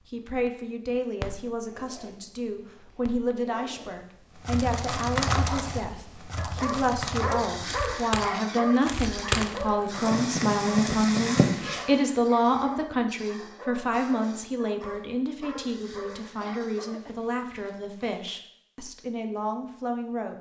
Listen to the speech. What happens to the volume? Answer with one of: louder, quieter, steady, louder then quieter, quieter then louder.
louder then quieter.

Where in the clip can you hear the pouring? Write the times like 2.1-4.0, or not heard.
not heard.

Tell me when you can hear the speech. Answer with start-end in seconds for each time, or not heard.
0.1-20.3.